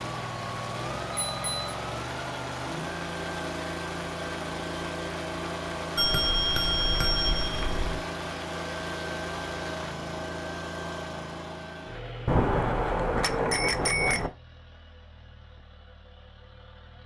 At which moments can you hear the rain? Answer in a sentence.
The rain can be heard from 0.0 to 10.0 s.